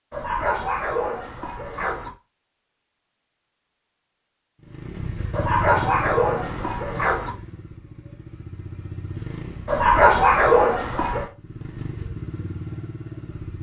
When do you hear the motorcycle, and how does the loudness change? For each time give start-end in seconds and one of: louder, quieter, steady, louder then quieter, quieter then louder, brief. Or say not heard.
4.6-9.8 quieter then louder
11.3-13.5 brief.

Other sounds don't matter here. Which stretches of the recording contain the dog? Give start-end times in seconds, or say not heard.
0.1-2.1, 5.3-7.3, 9.7-11.3.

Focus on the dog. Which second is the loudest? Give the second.
10 s.